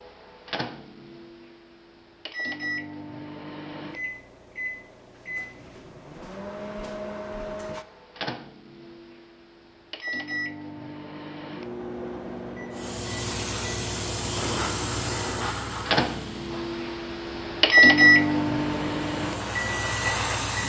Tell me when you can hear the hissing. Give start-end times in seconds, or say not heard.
12.7-20.6.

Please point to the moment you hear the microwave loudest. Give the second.
18 s.